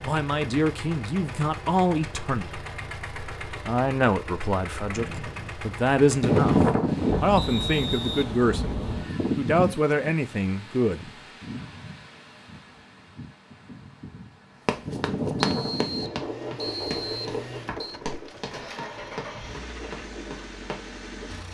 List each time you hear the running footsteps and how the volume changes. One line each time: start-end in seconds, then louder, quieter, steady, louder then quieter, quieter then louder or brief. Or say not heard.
14.7-20.9 quieter.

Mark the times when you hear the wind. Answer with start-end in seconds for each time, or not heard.
6.2-21.4.